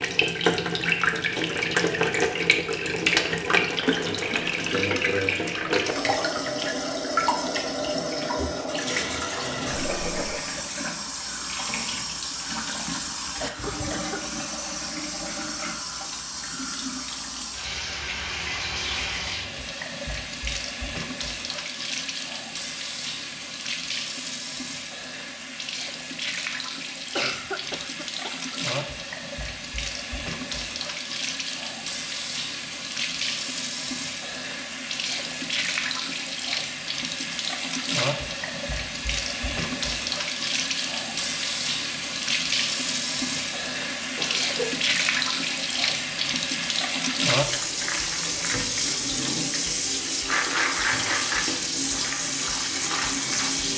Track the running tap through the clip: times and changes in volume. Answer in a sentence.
You can hear the running tap from 0.0 to 53.7 s, getting quieter then louder.